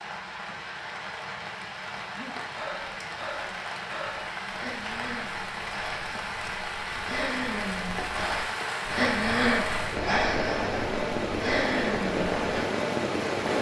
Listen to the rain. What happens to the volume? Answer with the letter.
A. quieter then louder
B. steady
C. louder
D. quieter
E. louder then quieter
C.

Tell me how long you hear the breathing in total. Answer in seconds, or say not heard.
11 s.